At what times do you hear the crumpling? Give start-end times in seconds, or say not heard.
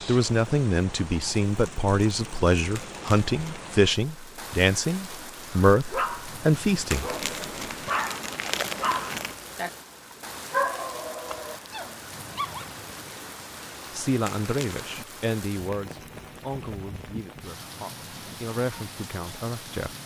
2.8-3.6, 6.9-9.3, 14.2-14.9.